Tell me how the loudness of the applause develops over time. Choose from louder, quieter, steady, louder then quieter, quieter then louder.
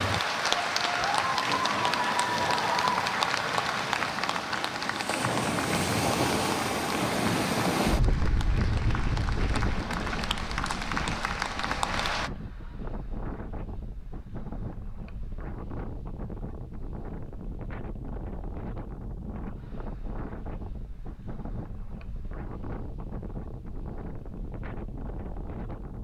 quieter then louder.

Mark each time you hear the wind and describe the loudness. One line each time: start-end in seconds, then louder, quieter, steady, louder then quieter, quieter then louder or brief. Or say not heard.
0.0-25.9 louder then quieter.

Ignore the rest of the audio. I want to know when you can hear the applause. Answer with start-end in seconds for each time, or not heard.
0.0-12.3.